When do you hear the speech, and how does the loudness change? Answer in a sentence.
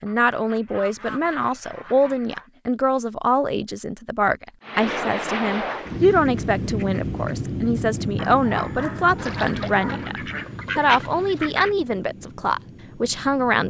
You can hear the speech from 0.0 to 13.6 s, at a steady volume.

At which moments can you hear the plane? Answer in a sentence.
You can hear the plane from 4.6 to 13.6 s.